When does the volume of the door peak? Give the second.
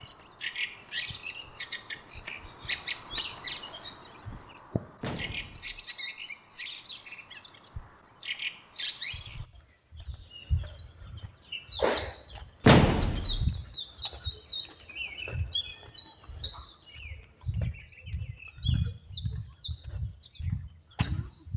13 s.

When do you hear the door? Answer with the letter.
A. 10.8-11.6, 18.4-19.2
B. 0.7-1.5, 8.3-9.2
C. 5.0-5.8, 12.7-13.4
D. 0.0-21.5
C.